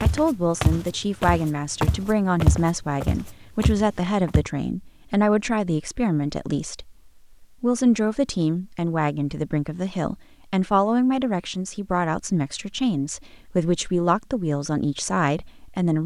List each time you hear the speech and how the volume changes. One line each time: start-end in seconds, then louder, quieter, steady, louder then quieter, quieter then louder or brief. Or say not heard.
0.0-16.0 steady.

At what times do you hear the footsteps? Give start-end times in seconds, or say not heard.
0.0-4.5.